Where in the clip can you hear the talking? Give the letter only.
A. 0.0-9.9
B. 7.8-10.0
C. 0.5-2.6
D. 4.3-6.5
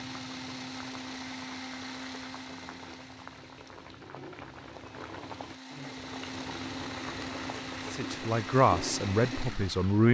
B.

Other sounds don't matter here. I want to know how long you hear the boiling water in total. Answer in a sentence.
The boiling water can be heard for 10 seconds in total.